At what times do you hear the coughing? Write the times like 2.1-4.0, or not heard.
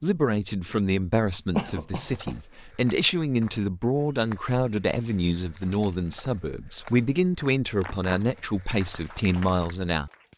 1.6-2.4.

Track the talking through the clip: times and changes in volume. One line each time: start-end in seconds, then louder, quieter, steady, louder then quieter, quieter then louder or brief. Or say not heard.
0.0-10.1 steady.